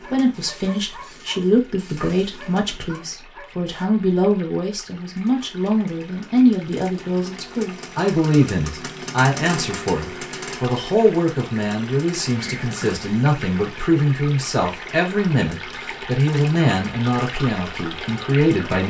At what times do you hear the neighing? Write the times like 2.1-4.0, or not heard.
12.3-13.1.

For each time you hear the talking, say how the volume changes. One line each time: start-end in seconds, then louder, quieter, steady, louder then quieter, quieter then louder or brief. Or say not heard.
0.0-18.8 steady.